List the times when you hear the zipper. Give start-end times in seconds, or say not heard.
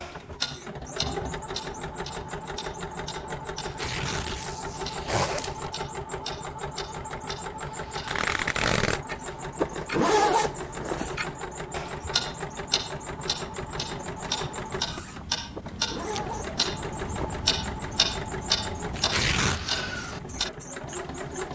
5.0-5.7, 9.6-11.2, 15.6-17.4.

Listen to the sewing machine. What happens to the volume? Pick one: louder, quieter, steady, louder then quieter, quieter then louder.
steady.